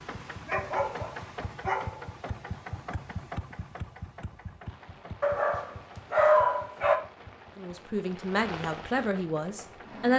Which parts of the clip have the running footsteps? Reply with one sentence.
You can't hear the running footsteps here.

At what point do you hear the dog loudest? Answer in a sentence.
The loudest moment of the dog is at 6 seconds.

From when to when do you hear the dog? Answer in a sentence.
The dog can be heard from 0.5 to 2.0 s and from 5.2 to 7.0 s.